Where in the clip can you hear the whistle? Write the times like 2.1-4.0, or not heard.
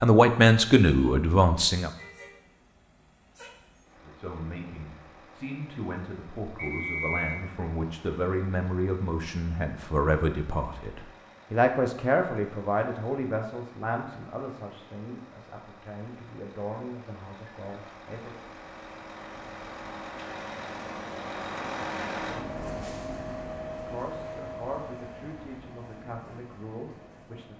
6.5-7.5.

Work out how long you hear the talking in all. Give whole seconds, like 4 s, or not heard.
20 s.